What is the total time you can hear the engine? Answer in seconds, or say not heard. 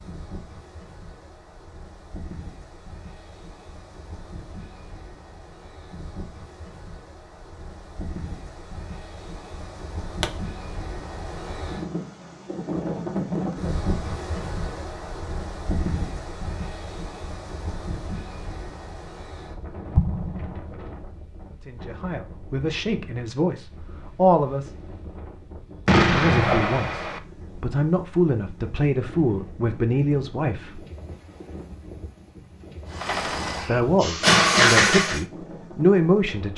2 s.